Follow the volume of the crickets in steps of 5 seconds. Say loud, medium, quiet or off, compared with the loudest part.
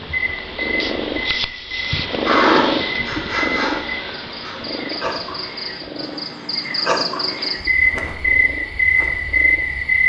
medium, loud.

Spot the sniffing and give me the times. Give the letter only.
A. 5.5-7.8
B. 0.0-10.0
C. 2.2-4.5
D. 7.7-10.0
C.